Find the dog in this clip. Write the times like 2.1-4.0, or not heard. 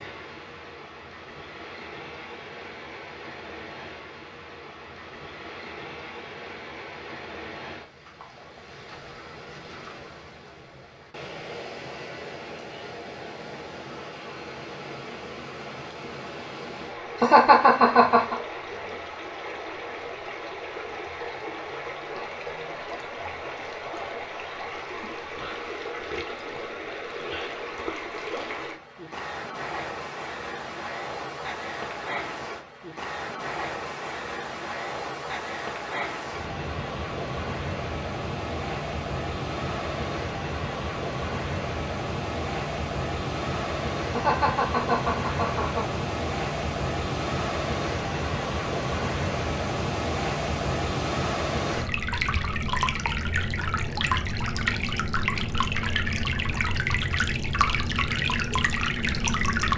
not heard.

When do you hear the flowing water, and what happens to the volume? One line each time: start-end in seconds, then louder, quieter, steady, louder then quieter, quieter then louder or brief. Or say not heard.
0.0-59.7 louder.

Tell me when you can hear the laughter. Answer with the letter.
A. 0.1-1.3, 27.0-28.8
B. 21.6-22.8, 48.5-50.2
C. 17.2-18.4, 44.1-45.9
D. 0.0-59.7
C.